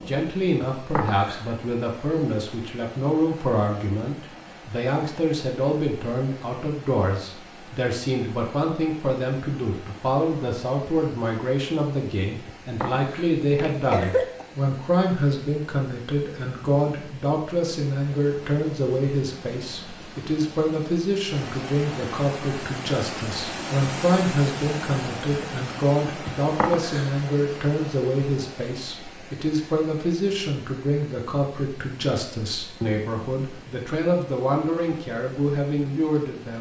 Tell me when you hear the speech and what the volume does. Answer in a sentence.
You can hear the speech from 0.1 to 36.5 s, at a steady volume.